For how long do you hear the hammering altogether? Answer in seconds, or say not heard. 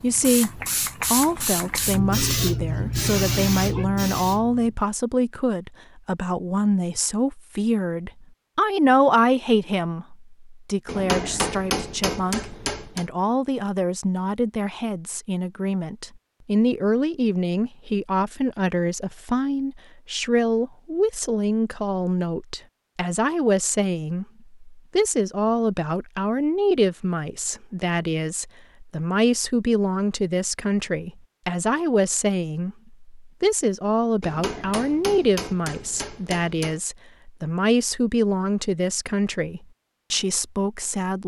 5 s.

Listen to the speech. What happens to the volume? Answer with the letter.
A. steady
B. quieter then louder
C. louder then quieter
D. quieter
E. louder
A.